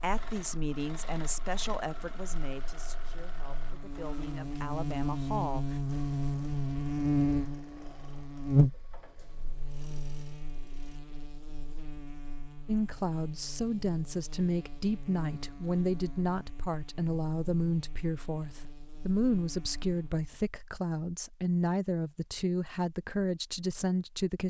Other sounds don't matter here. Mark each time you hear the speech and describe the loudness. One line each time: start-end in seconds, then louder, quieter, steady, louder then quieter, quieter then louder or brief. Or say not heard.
0.0-5.8 quieter then louder
12.7-24.4 steady.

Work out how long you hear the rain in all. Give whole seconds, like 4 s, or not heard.
not heard.